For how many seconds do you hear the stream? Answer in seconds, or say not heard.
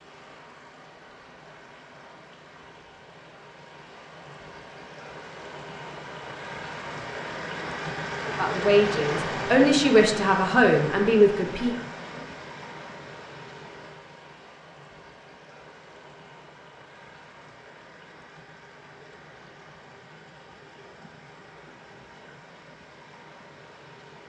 24 s.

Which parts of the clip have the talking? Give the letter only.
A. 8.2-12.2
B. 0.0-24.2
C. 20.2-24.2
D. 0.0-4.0
A.